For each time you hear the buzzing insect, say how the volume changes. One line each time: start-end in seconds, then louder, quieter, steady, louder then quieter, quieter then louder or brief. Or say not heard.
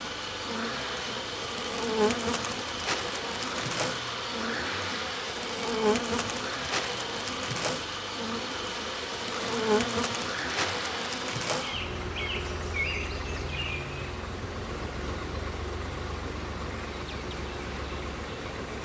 0.0-18.7 quieter.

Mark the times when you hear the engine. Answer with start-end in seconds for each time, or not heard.
0.0-18.7.